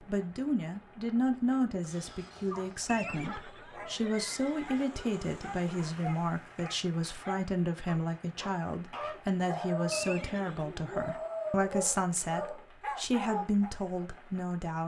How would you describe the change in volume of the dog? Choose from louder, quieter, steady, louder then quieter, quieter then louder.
louder.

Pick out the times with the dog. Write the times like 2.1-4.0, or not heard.
1.9-13.7.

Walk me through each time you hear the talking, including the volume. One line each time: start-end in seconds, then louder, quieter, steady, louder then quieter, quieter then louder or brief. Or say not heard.
0.1-14.8 steady.